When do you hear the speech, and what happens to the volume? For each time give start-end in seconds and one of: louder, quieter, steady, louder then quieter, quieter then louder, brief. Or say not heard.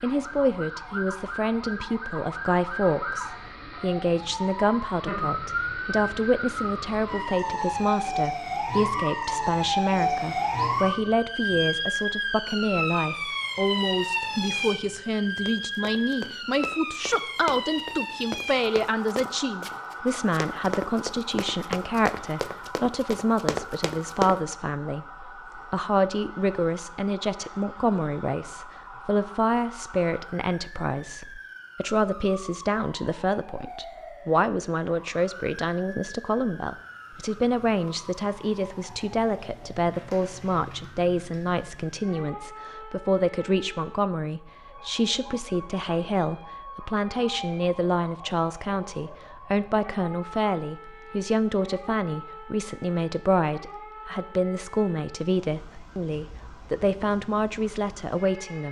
0.0-58.6 steady.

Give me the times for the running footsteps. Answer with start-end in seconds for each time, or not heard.
15.2-24.4.